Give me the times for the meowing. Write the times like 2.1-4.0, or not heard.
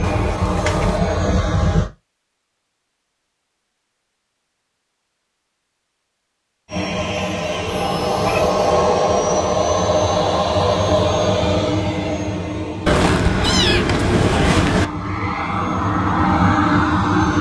0.0-1.0, 7.7-8.5, 12.8-14.8.